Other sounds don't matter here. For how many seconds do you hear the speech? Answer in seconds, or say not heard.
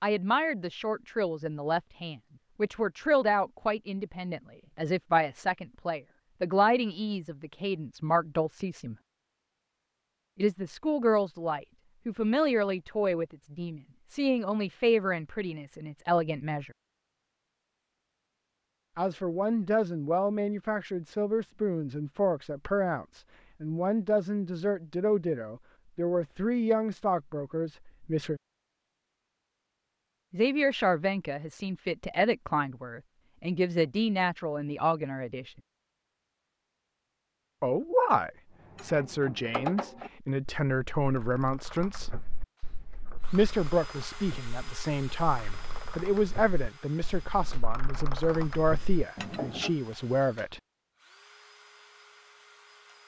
42 s.